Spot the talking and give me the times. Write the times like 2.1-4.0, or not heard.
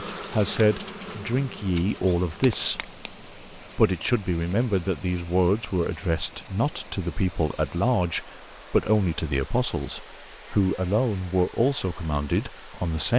0.0-2.9, 3.5-13.1.